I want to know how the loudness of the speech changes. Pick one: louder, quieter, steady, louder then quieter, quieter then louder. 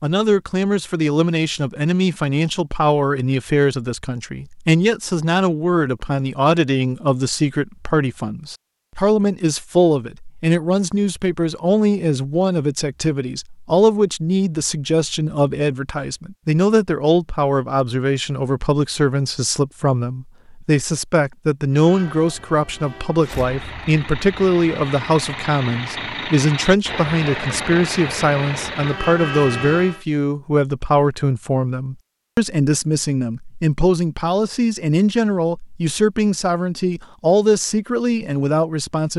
steady.